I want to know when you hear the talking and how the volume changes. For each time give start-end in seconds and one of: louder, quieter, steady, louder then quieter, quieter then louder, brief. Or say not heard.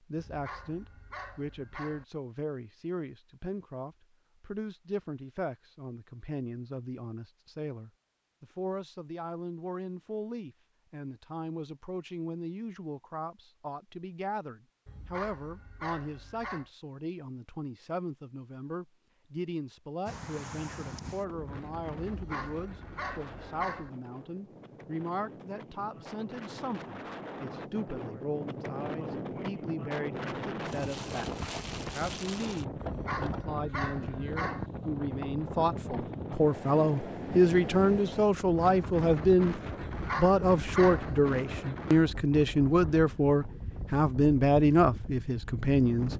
0.0-46.1 louder.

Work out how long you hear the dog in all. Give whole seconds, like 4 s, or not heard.
9 s.